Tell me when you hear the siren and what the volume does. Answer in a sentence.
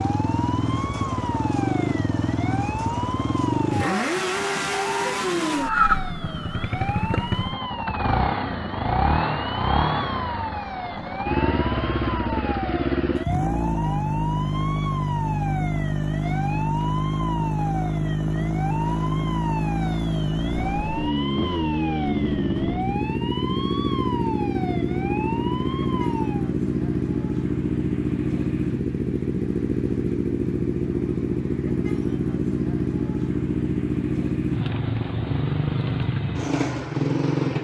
You can hear the siren from 0.0 to 26.5 s, at a steady volume.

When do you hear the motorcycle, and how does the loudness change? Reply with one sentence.
The motorcycle can be heard from 0.0 to 37.5 s, at a steady volume.